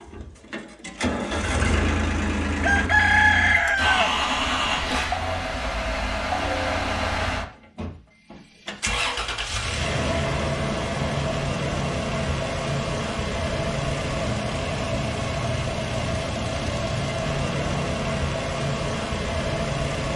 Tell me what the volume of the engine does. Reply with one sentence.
The loudness of the engine stays about the same.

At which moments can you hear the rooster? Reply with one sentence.
You can hear the rooster from 2.6 to 4.3 s.